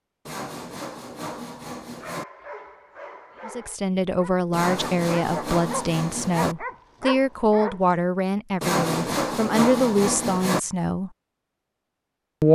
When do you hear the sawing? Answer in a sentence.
You can hear the sawing from 0.2 to 2.2 s, from 4.5 to 6.5 s and from 8.6 to 10.6 s.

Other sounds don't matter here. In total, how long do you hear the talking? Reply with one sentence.
The talking can be heard for 8 seconds in total.